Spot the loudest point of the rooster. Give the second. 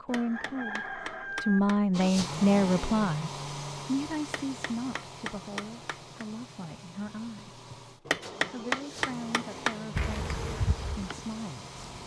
1 s.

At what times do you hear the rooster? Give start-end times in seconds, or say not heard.
0.1-1.6.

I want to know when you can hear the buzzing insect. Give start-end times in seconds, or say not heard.
9.9-12.0.